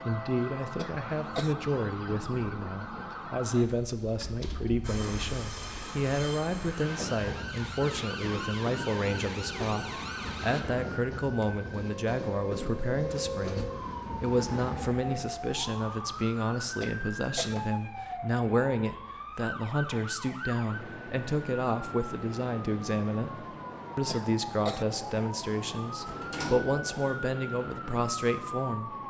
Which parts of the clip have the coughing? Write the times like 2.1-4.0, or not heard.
0.8-1.6, 16.8-17.6, 24.1-24.9.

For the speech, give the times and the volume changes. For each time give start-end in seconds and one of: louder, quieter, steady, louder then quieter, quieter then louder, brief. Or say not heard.
0.1-29.0 steady.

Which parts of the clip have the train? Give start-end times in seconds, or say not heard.
4.8-15.2.